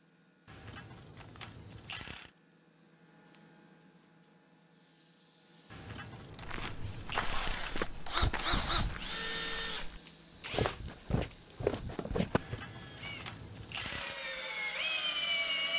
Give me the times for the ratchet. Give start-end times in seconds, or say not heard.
0.5-2.3, 5.7-7.7, 12.3-14.2.